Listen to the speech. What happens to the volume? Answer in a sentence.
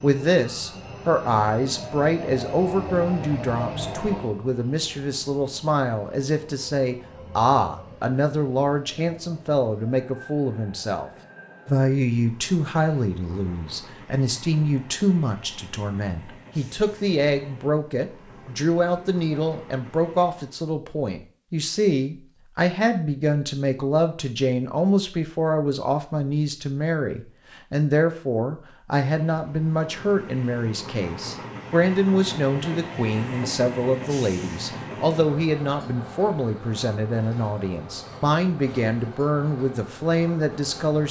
The volume of the speech stays about the same.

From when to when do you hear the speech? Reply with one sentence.
The speech can be heard from 0.0 to 41.0 s.